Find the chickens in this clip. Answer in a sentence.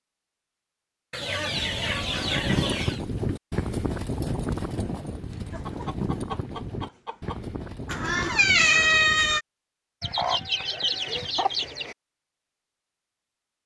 The chickens can be heard from 1.1 to 3.0 s, from 5.5 to 7.4 s and from 10.0 to 11.9 s.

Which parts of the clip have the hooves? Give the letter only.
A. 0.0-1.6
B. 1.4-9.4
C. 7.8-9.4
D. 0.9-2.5
B.